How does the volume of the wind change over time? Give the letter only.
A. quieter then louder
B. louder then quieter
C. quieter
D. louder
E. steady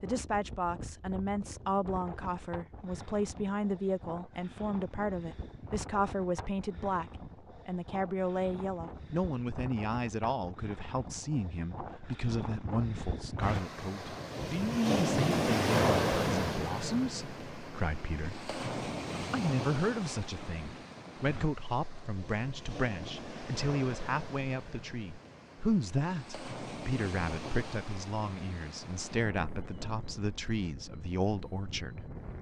B.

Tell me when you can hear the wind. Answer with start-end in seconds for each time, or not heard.
0.0-32.3.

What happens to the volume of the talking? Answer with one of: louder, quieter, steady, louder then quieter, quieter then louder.
steady.